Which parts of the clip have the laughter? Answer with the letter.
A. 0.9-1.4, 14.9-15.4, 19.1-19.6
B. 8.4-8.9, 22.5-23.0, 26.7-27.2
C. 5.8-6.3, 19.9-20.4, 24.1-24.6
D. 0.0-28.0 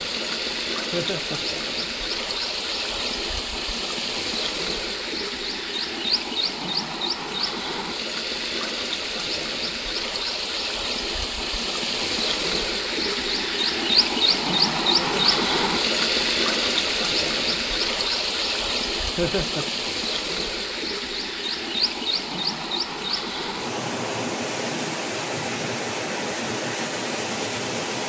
A.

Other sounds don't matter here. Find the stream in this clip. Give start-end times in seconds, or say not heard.
0.0-28.0.